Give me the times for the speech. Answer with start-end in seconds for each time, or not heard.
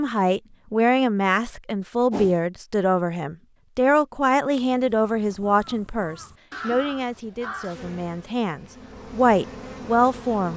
0.0-10.5.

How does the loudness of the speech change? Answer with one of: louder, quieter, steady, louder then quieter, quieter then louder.
quieter then louder.